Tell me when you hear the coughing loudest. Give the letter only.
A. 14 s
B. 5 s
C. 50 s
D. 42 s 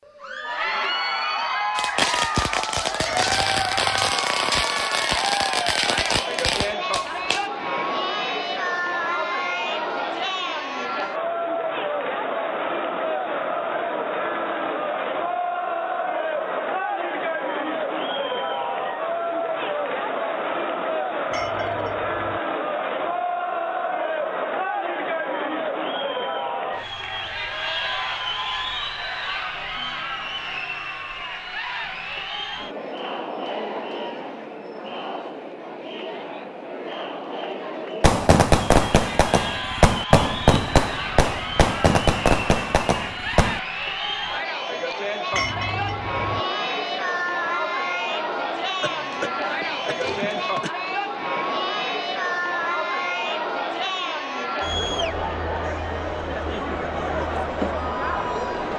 C.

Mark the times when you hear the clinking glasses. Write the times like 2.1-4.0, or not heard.
3.0-3.9, 21.3-22.4, 45.3-46.4.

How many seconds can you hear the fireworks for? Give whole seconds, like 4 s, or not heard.
11 s.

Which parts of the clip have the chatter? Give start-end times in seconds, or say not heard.
0.1-58.7.